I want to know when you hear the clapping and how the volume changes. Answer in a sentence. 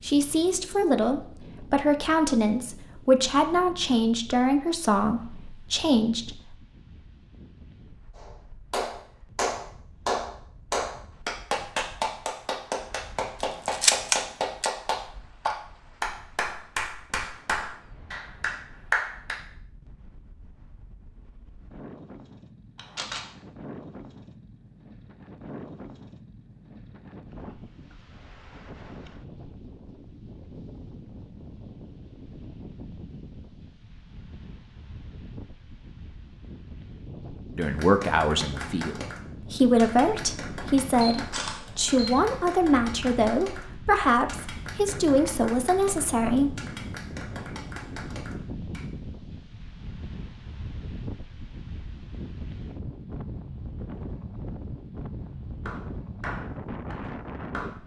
The clapping can be heard from 8.2 to 19.4 s, at a steady volume; from 37.6 to 48.9 s, at a steady volume; and briefly from 55.6 to 57.8 s.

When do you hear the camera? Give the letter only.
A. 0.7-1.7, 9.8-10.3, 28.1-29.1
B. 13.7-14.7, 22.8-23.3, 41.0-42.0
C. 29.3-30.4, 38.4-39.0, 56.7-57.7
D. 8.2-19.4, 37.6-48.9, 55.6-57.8
B.